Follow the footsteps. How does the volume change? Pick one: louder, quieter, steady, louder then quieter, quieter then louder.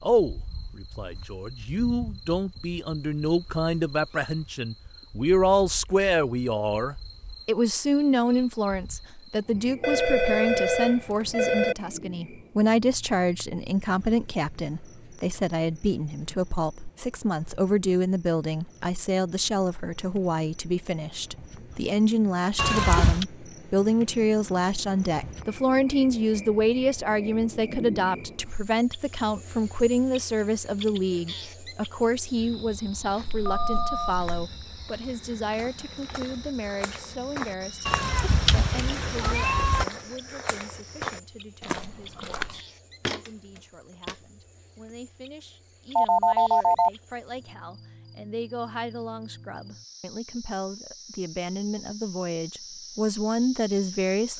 louder.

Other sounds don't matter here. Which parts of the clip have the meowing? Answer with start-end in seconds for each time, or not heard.
22.6-23.2, 37.9-39.9.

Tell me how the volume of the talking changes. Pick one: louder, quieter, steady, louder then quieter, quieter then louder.
quieter.